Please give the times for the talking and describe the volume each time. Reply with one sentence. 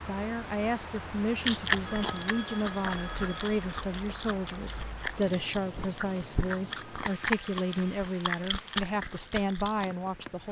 The talking can be heard from 0.0 to 10.4 s, at a steady volume.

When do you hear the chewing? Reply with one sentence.
The chewing can be heard from 1.4 to 9.9 s.